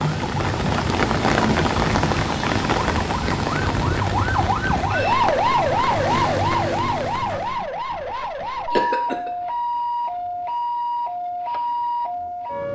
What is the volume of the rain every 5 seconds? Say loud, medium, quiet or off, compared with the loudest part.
loud, medium, off.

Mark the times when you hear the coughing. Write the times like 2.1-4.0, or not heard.
8.4-9.3.